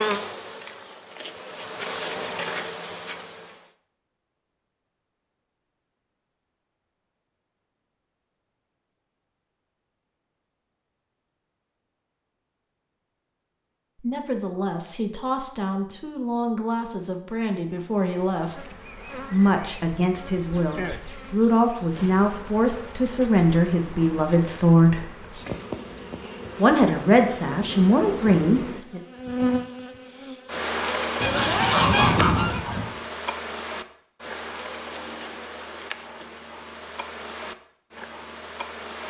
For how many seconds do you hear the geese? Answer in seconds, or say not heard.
2 s.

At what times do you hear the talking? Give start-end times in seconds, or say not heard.
14.0-18.7, 19.3-25.1, 26.6-29.0.